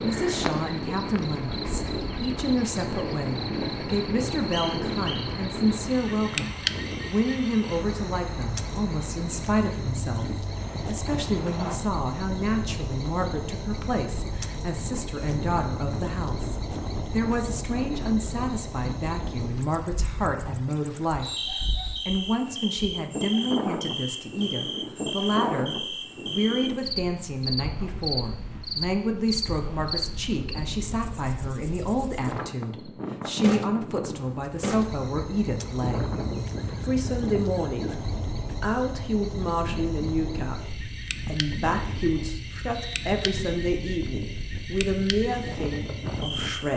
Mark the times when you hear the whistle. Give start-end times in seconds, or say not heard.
4.5-5.2, 21.2-22.7, 42.7-43.4.